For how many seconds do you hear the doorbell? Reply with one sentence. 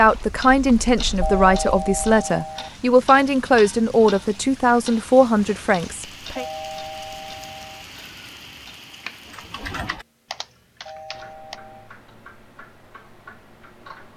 The doorbell can be heard for 4 seconds in total.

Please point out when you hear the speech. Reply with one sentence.
You can hear the speech from 0.0 to 6.5 s.